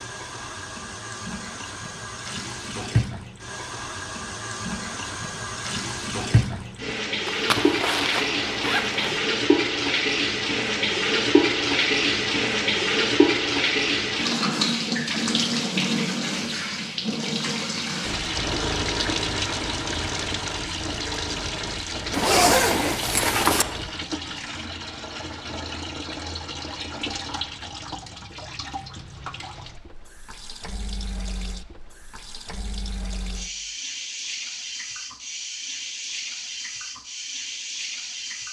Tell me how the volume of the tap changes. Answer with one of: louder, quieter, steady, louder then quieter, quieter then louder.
louder then quieter.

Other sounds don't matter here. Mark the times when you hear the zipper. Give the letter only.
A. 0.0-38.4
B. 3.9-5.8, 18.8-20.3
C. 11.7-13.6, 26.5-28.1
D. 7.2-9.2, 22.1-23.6
D.